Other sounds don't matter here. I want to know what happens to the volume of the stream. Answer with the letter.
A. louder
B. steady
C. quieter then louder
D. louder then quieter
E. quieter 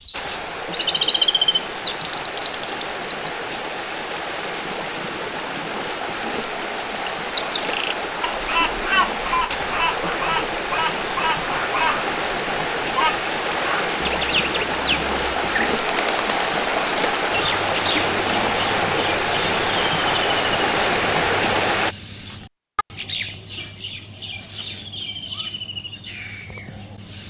A.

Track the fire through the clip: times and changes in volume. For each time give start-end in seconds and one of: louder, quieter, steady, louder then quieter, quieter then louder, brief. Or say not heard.
not heard.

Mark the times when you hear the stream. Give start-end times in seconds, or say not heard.
0.0-21.9.